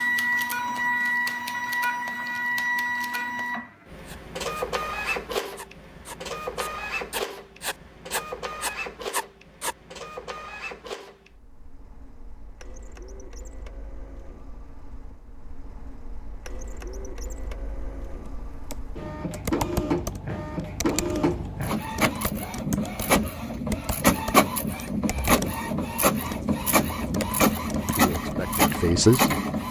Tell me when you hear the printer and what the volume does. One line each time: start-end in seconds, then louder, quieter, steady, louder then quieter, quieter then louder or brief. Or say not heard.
0.0-29.6 quieter then louder.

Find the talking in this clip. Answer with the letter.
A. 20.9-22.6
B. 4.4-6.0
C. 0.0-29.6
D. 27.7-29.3
D.